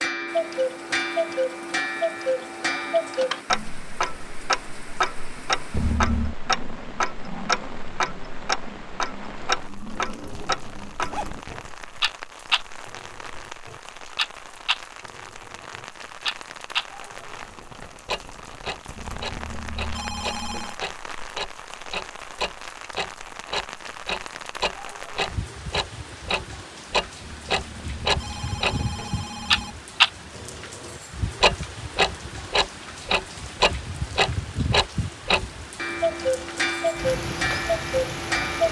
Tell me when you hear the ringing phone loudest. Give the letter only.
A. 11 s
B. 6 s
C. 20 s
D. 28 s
B.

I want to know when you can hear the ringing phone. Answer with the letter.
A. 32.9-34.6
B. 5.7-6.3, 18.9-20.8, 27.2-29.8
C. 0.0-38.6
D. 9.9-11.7
B.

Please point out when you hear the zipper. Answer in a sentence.
The zipper can be heard from 9.9 to 11.7 s.